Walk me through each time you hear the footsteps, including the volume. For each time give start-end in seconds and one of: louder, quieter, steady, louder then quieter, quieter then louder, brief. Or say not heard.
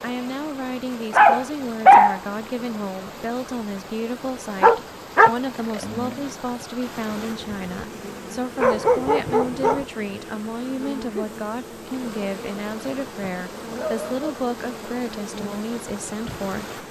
not heard.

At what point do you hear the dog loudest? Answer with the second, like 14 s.
2 s.